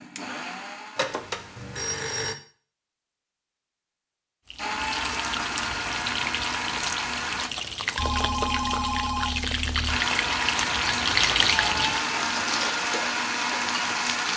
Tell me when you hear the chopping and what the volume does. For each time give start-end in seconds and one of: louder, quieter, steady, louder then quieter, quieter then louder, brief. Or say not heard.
not heard.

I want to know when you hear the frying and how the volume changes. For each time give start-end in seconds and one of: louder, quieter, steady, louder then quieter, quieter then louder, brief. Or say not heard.
4.5-14.3 louder then quieter.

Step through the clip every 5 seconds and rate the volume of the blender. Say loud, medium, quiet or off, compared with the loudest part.
medium, loud, loud.